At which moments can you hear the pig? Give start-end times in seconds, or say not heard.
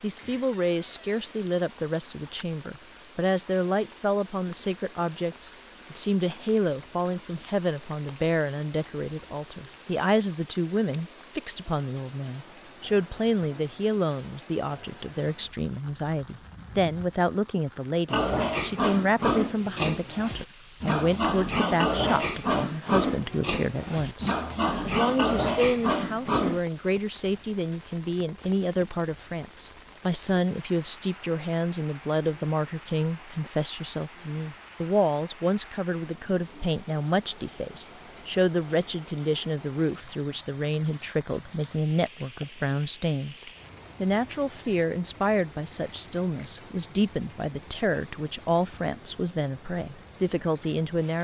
18.1-26.6.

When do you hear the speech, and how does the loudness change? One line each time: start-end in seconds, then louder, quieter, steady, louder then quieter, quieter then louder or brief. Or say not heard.
0.0-51.2 steady.